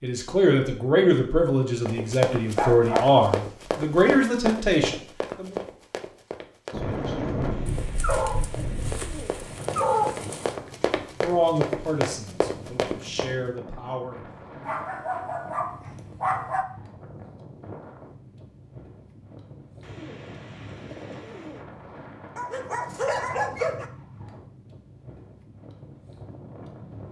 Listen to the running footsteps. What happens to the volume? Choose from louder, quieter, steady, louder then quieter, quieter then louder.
quieter then louder.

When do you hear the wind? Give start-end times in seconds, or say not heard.
6.7-27.0.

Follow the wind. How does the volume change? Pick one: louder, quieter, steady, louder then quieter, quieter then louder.
quieter.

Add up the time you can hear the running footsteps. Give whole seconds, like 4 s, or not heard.
12 s.